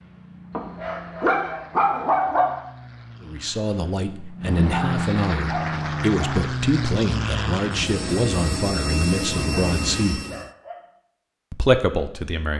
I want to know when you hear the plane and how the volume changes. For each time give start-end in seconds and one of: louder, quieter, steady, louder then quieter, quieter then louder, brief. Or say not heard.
0.0-10.5 louder.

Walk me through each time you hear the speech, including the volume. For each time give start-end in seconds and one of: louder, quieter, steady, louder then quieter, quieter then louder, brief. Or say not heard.
3.2-10.2 steady
11.5-12.5 brief.